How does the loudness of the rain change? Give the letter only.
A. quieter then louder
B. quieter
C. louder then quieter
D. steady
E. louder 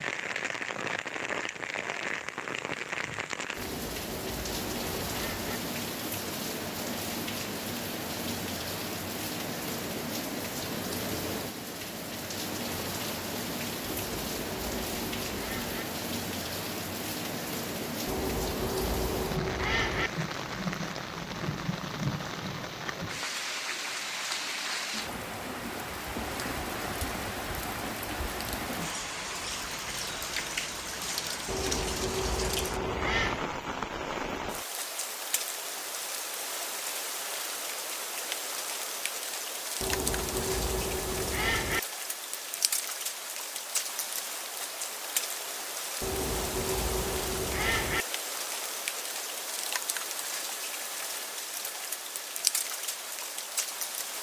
D.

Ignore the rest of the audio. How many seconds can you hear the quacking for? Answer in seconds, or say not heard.
12 s.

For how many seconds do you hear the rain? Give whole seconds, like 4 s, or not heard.
54 s.